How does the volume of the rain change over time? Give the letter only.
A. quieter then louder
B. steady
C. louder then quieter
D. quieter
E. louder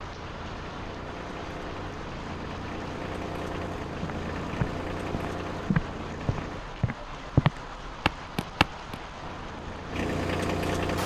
B.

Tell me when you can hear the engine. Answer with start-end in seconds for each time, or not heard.
0.0-6.6, 9.2-11.0.